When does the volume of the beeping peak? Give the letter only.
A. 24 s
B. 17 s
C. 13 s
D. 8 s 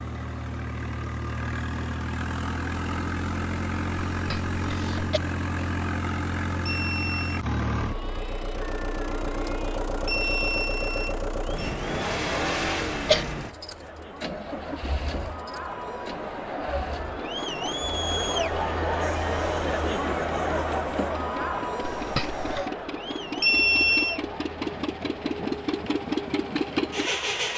A.